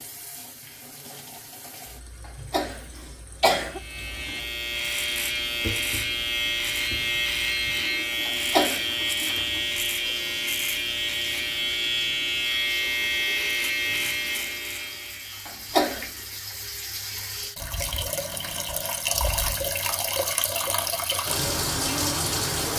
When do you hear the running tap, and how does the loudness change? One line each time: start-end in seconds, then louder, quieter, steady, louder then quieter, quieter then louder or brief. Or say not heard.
0.0-22.7 louder.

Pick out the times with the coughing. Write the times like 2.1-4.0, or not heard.
2.2-3.8, 8.2-8.8, 15.4-16.1.